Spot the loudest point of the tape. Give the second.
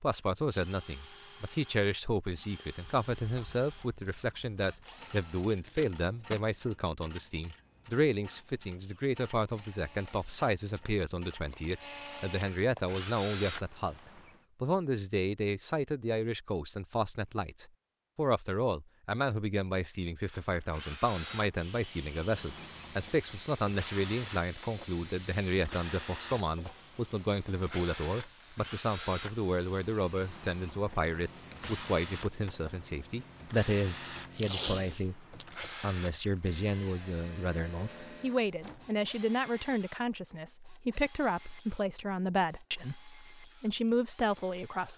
35 s.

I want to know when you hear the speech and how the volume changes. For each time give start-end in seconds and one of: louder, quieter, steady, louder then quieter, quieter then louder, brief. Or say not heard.
0.0-44.9 steady.